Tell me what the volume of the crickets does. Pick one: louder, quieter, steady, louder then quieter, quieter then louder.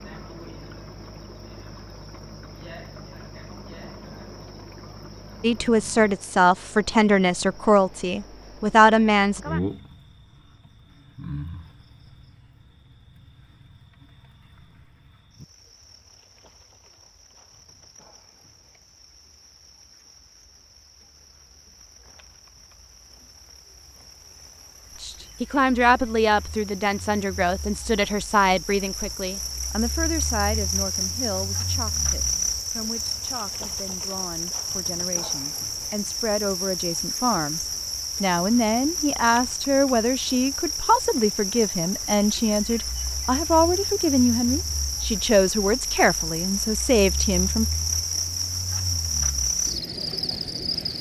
quieter then louder.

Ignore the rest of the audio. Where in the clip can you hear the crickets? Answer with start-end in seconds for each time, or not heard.
0.0-50.9.